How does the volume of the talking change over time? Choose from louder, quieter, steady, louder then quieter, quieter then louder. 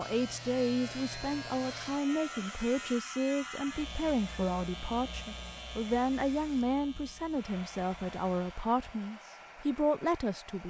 steady.